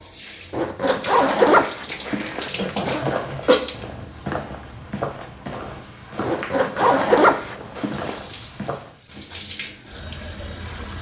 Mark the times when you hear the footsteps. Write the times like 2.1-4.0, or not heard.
2.9-8.9.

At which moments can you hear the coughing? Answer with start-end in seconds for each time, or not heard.
2.5-3.6.